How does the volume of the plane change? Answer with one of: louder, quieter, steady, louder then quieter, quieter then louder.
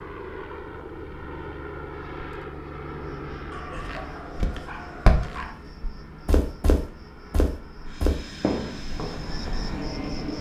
quieter then louder.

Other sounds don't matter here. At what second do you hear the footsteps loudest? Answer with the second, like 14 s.
5 s.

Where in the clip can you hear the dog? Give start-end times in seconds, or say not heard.
3.5-5.5.